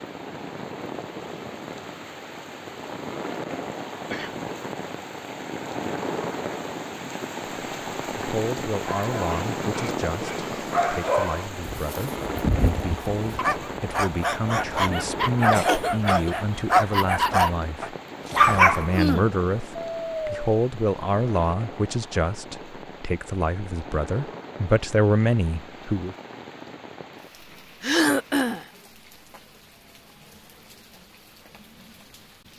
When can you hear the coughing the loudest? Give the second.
28 s.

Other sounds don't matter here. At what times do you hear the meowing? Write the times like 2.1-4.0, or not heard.
not heard.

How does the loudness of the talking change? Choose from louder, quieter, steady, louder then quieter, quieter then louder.
louder.